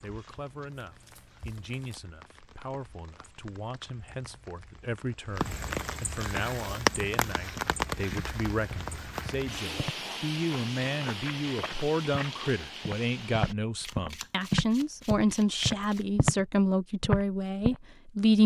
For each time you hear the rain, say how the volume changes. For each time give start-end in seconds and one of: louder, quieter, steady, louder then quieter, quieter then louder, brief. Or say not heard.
0.0-13.6 louder then quieter.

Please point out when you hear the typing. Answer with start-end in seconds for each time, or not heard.
not heard.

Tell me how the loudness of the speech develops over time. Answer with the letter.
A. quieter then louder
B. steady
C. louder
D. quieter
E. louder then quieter
C.